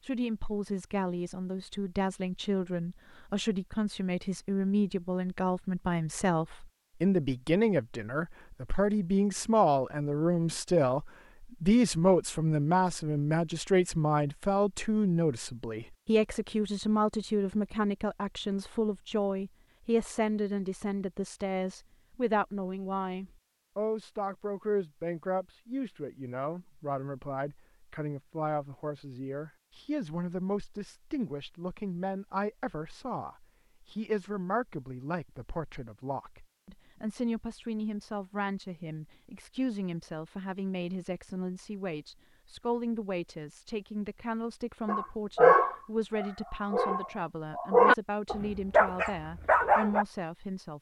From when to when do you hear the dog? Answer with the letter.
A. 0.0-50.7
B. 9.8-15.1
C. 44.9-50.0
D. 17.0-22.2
C.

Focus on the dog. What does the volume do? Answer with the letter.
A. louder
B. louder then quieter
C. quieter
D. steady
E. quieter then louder
E.